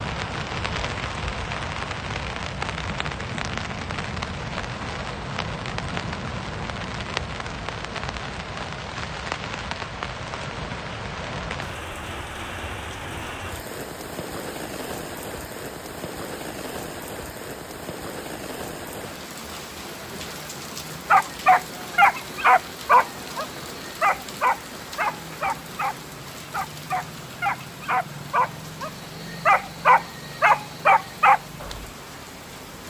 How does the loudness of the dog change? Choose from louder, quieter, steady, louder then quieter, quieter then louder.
quieter then louder.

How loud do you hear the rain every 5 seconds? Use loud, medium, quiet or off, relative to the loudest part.
loud, loud, loud, medium, medium, medium, medium.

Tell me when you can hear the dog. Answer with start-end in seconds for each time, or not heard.
21.1-31.9.